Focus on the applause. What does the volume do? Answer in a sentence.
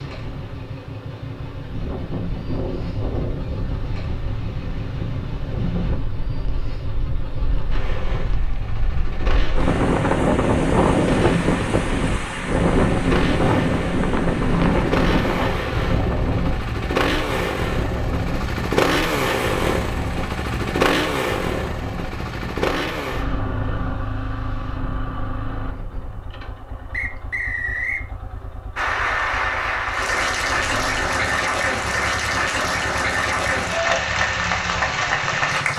The loudness of the applause stays about the same.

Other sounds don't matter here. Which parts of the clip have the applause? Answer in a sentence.
You can hear the applause from 28.8 to 35.7 s.